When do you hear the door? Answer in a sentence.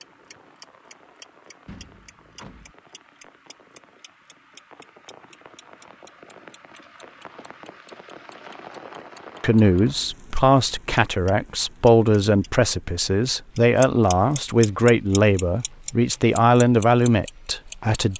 You can hear the door from 1.6 to 2.8 s.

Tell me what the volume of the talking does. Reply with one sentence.
The volume of the talking stays about the same.